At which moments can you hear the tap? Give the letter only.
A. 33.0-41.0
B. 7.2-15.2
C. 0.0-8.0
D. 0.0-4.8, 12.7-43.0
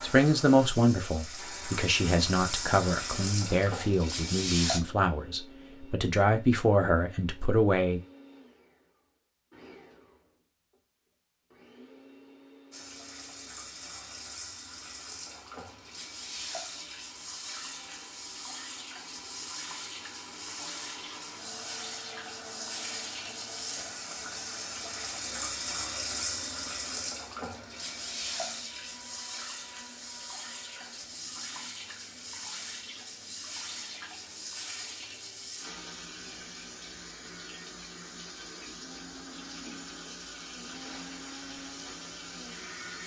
D.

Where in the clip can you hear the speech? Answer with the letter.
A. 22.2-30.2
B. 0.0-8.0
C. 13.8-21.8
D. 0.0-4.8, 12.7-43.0
B.